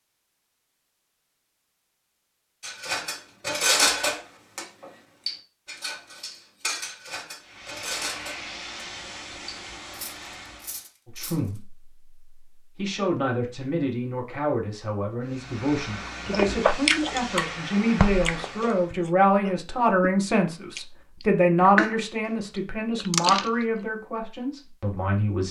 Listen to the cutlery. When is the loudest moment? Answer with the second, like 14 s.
4 s.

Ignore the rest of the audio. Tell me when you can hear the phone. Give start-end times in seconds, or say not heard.
not heard.